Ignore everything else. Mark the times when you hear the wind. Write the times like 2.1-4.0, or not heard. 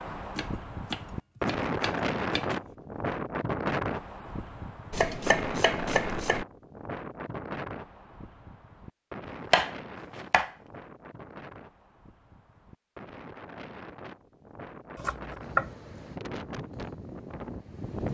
0.0-18.1.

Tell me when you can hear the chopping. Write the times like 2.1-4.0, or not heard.
0.3-2.5, 4.9-6.5, 9.5-10.6, 14.9-15.7.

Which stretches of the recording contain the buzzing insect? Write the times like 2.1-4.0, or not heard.
not heard.